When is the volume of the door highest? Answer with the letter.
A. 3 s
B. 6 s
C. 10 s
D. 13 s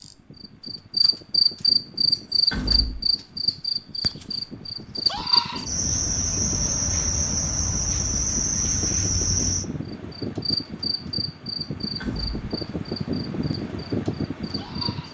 A.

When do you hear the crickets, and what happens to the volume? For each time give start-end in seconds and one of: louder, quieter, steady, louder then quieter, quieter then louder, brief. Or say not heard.
0.0-15.1 quieter.